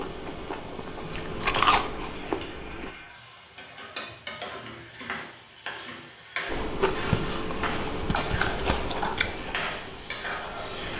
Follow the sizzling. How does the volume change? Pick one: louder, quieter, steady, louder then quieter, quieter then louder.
louder.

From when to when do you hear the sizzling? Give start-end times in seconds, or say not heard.
0.0-10.9.